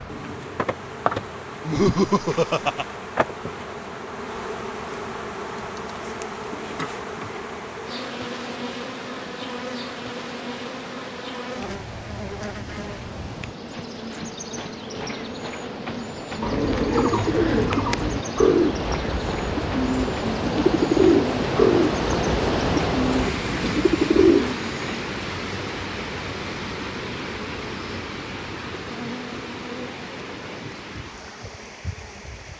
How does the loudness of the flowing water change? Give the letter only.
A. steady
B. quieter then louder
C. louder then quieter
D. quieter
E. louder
C.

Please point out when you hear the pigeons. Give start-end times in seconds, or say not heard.
16.4-24.6.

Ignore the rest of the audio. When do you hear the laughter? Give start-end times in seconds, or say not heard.
1.6-2.9.